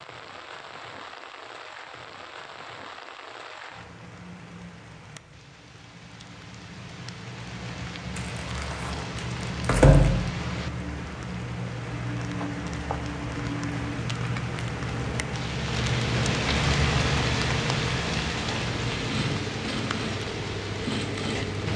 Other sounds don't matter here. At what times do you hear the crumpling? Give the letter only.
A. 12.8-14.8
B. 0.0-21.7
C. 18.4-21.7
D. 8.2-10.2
D.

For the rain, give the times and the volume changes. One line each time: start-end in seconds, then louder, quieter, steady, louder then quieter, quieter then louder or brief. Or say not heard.
0.0-21.7 louder.